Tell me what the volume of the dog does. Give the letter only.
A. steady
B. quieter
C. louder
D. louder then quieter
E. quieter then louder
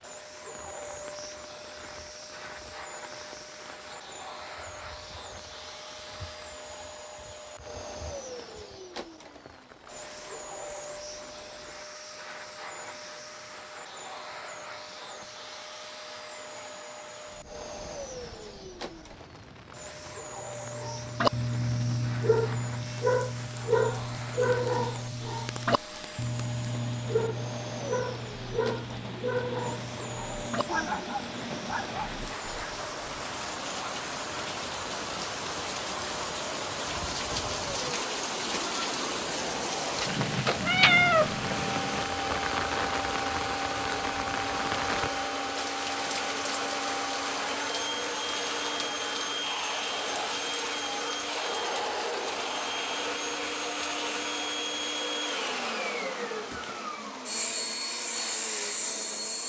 B.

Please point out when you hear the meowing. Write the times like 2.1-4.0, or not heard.
40.0-41.6.